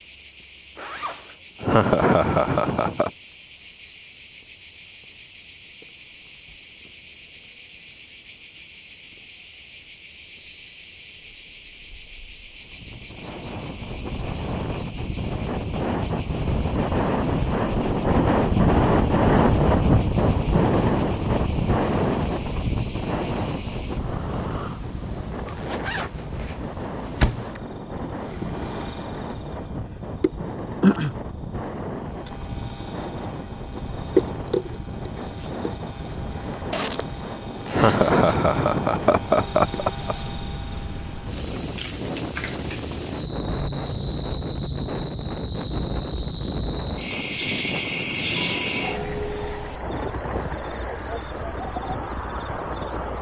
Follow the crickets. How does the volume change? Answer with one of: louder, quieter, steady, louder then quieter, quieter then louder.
louder.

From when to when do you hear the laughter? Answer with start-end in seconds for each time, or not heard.
1.6-3.1, 37.6-40.1.